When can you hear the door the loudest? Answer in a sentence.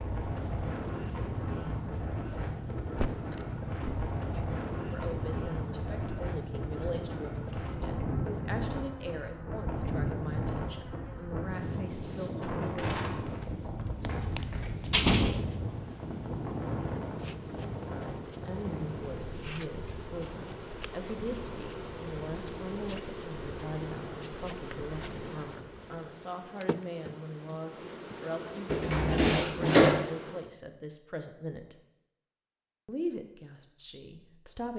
The volume of the door peaks at 30 seconds.